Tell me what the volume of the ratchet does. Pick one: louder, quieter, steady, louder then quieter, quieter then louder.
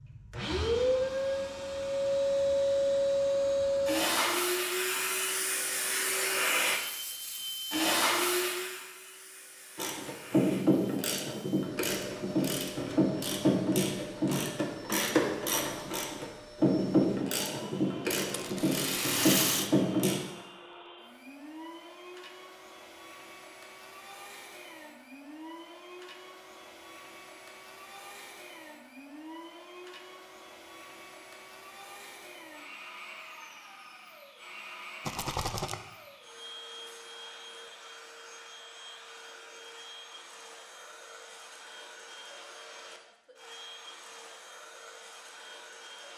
steady.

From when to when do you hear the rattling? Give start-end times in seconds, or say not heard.
18.3-19.7, 35.0-35.8.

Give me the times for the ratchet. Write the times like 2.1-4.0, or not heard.
9.8-20.2.